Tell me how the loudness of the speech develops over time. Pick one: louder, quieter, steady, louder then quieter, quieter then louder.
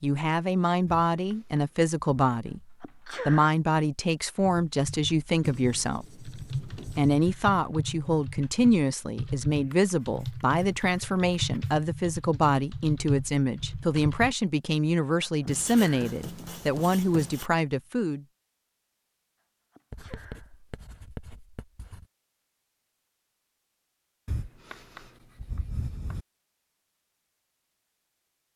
steady.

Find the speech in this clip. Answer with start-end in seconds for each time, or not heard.
0.0-18.2.